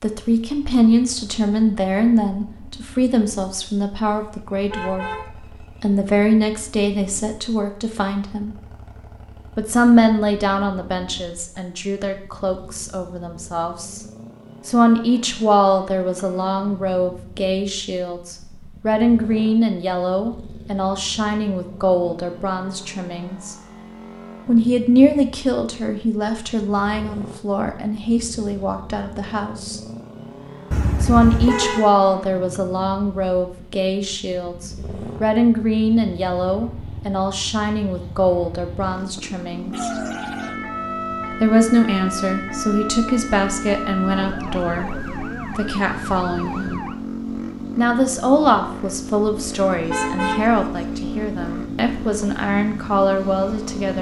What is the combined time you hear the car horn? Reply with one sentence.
The car horn can be heard for 4 seconds in total.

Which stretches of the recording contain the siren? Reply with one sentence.
The siren can be heard from 39.7 to 47.0 s.